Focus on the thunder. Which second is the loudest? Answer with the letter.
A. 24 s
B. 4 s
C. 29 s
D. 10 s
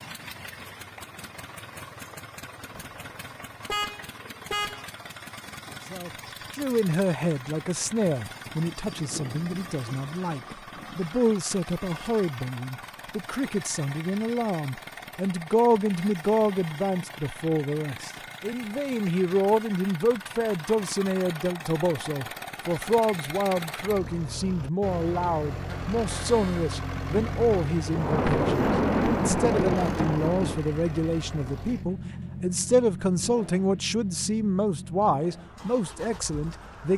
C.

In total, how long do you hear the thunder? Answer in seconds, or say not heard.
5 s.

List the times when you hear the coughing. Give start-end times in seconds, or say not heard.
not heard.